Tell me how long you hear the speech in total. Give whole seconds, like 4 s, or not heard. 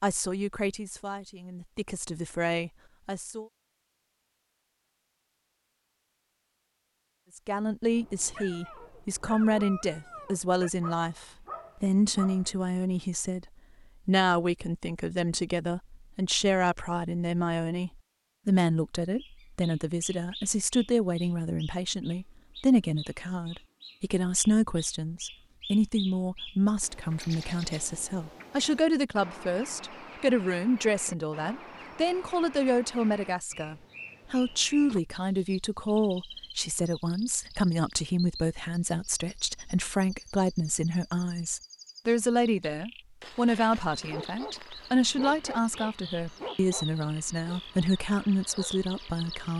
45 s.